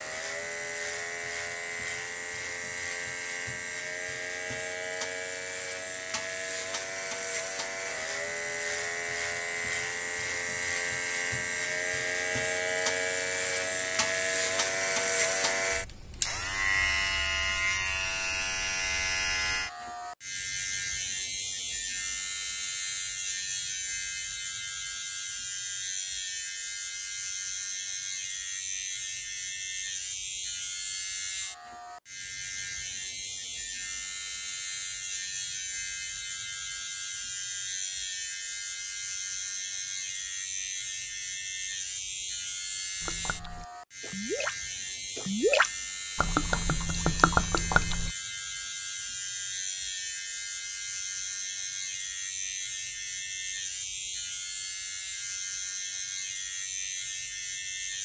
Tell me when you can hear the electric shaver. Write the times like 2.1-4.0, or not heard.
0.0-58.0.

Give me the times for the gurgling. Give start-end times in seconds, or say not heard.
43.0-44.5, 45.1-48.1.